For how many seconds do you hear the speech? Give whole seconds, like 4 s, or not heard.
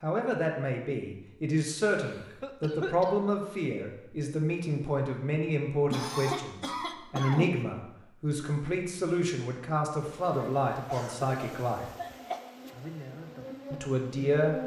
13 s.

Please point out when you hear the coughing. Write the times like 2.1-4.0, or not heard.
2.0-3.2, 5.9-7.6, 10.8-12.4.